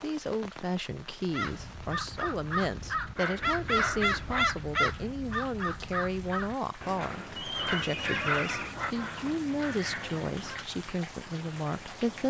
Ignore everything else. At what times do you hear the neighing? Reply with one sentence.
The neighing can be heard from 7.3 to 8.8 s.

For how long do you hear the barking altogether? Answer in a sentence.
The barking can be heard for 3 seconds in total.